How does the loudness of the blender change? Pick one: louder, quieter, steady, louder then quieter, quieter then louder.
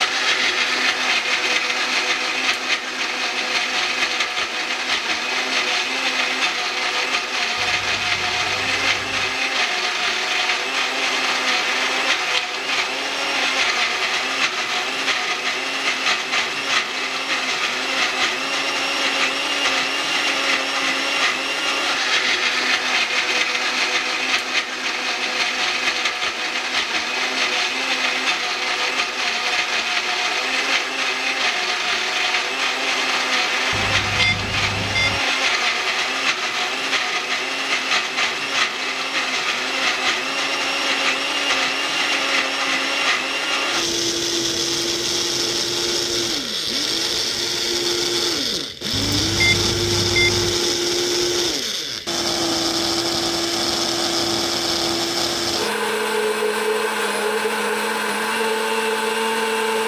steady.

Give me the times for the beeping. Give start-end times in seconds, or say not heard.
7.5-9.4, 33.7-35.2, 48.9-50.6.